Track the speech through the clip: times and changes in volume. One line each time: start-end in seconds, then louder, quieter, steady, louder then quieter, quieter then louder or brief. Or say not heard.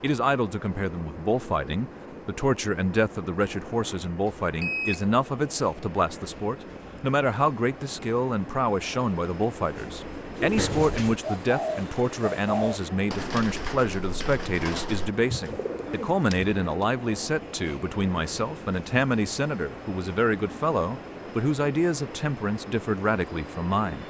0.0-24.0 steady.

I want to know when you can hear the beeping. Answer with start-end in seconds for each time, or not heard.
4.6-5.0.